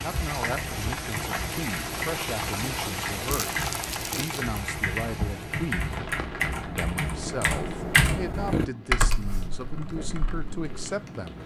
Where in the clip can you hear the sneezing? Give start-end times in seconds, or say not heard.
not heard.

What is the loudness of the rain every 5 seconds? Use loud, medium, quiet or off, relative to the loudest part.
loud, medium, medium.